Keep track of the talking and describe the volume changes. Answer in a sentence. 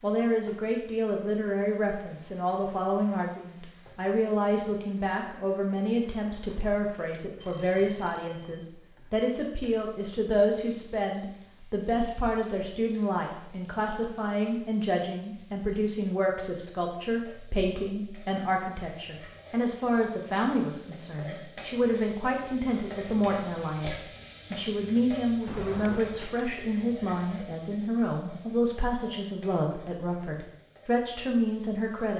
The loudness of the talking stays about the same.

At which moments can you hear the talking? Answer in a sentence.
The talking can be heard from 0.0 to 32.1 s.